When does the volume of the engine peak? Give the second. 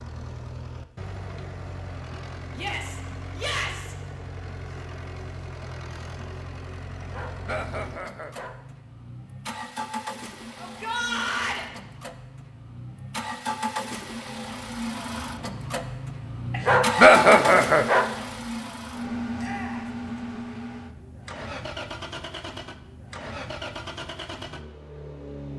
17 s.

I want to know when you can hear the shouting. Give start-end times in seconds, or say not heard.
2.5-4.0, 10.6-11.7, 19.4-19.9.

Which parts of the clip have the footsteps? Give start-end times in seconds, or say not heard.
not heard.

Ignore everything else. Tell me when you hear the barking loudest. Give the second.
17 s.